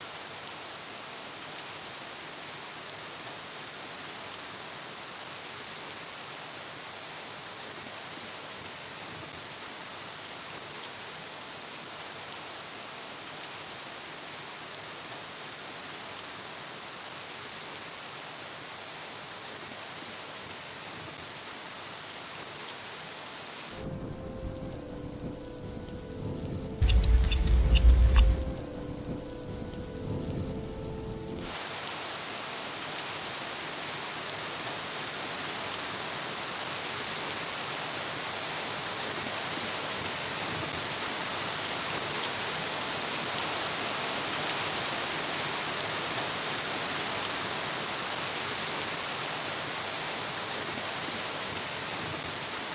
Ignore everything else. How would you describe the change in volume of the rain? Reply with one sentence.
The loudness of the rain goes up.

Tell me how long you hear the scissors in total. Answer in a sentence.
You can hear the scissors for 2 seconds altogether.